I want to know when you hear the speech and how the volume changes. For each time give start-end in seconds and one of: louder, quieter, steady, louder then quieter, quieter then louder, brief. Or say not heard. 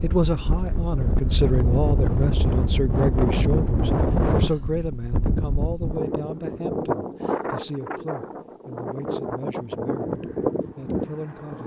0.0-11.6 quieter.